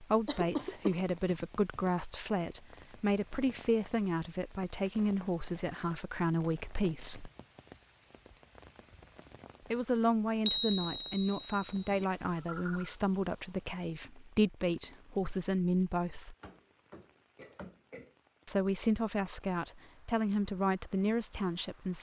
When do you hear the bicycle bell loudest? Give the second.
11 s.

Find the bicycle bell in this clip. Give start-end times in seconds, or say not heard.
10.4-12.0.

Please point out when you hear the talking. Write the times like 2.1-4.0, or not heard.
0.0-7.3, 9.7-16.4, 18.4-21.9.